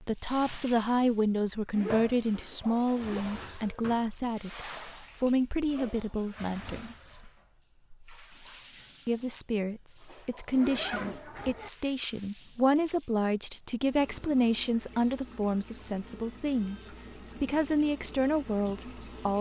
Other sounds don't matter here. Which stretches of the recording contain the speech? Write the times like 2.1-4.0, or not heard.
0.0-7.3, 9.1-19.3.